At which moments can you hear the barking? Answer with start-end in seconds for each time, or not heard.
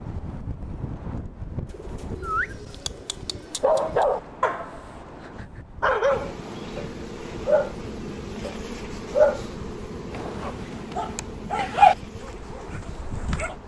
2.2-4.8, 5.8-13.6.